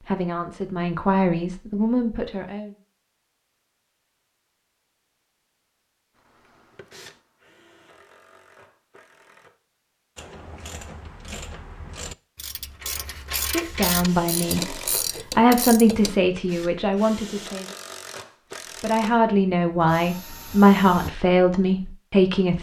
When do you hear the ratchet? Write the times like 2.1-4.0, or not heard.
10.2-16.1.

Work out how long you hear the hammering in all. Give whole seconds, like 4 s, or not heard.
not heard.